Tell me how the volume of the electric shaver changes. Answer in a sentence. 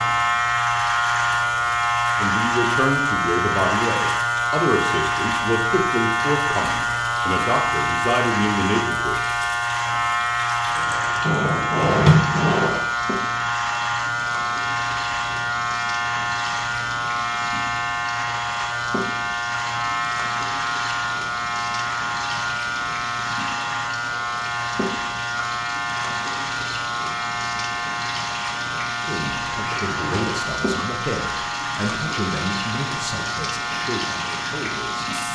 The volume of the electric shaver goes down.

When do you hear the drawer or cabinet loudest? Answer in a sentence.
The loudest moment of the drawer or cabinet is at 12 seconds.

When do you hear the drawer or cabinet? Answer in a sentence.
The drawer or cabinet can be heard from 11.2 to 12.8 s and from 29.6 to 30.4 s.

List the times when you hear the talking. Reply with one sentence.
The talking can be heard from 2.1 to 9.2 s and from 29.1 to 35.1 s.